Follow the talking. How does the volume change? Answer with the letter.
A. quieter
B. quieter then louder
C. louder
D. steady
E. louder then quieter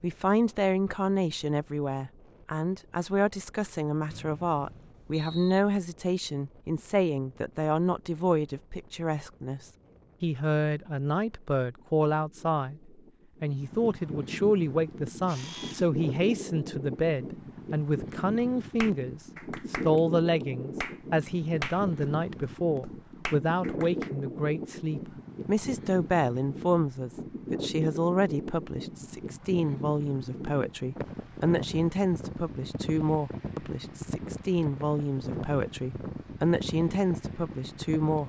D.